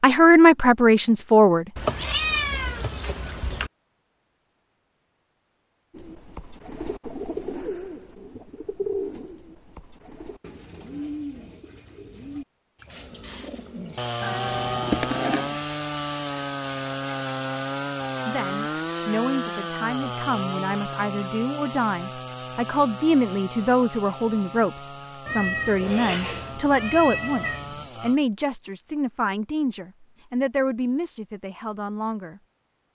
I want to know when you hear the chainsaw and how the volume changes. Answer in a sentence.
The chainsaw can be heard from 12.9 to 28.2 s, getting quieter.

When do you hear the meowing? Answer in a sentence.
You can hear the meowing from 1.8 to 3.7 s, from 14.2 to 15.6 s and from 25.2 to 27.9 s.